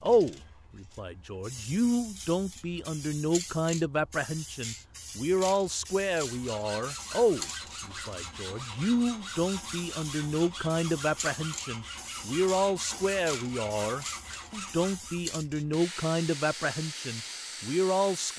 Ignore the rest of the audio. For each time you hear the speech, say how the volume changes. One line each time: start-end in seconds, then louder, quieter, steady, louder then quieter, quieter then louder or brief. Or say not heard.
0.0-18.3 steady.